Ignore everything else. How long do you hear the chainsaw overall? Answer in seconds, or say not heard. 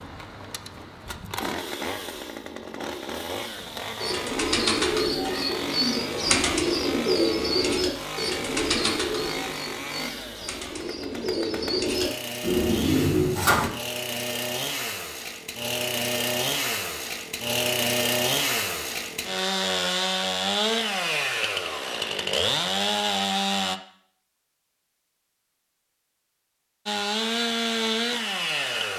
26 s.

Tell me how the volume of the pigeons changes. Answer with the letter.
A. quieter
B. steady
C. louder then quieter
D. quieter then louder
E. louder
D.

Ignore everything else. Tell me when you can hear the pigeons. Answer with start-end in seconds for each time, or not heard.
4.0-13.7.